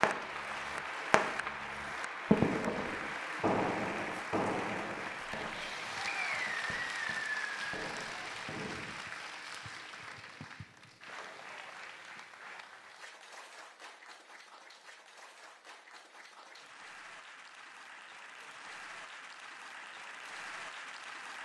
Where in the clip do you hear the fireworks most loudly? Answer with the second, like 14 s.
2 s.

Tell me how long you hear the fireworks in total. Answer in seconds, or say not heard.
9 s.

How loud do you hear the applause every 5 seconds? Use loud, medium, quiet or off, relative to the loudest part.
loud, loud, medium, medium, medium.